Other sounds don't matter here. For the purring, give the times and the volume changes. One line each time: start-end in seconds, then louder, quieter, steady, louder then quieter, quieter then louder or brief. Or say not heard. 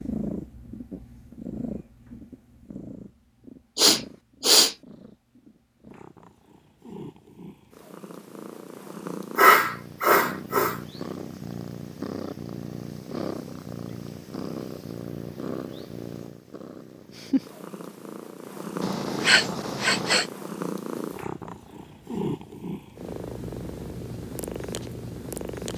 0.0-25.7 louder.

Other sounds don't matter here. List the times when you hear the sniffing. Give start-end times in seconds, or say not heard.
3.8-4.8, 9.3-10.8, 18.8-20.2.